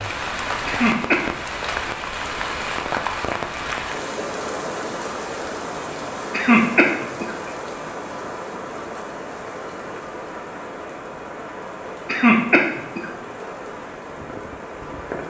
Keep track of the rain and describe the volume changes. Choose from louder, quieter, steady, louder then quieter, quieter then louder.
quieter.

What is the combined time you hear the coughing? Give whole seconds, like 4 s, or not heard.
3 s.